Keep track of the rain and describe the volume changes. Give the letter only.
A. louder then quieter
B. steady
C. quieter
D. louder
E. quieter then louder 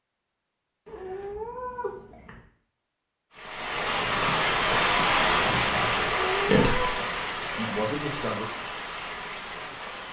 C.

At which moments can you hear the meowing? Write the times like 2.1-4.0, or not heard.
0.8-2.4, 6.0-7.0.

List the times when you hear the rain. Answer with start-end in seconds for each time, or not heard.
3.3-10.0.